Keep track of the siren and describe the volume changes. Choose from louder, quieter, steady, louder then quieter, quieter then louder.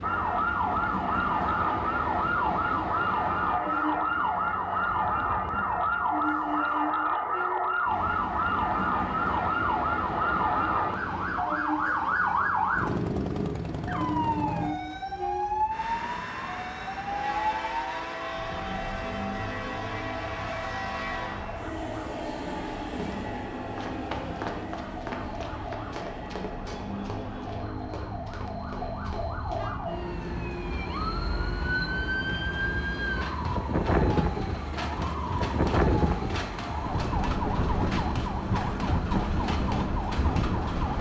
quieter then louder.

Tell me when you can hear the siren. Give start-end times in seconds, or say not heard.
0.0-40.9.